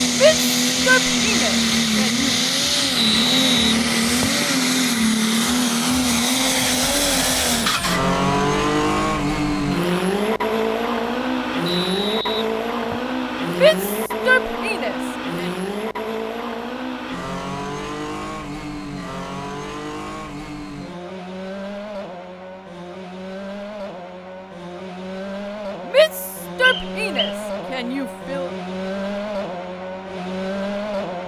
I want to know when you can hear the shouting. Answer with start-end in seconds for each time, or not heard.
0.1-2.4, 13.5-15.5, 25.9-28.5.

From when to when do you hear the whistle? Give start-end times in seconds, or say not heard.
3.0-4.5, 11.7-13.2, 26.6-27.4.